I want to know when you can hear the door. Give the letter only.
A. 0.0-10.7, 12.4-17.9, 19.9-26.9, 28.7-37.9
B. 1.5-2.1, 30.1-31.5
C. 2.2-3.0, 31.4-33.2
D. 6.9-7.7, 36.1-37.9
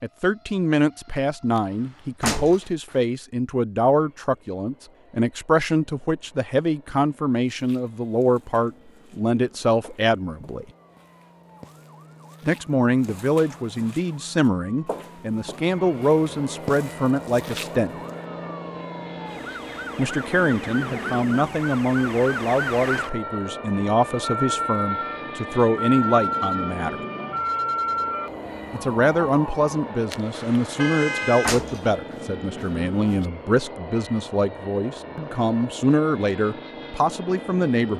C.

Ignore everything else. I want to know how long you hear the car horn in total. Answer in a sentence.
The car horn can be heard for 2 seconds in total.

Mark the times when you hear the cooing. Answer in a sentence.
You can't hear the cooing here.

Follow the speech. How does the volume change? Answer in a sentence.
The loudness of the speech stays about the same.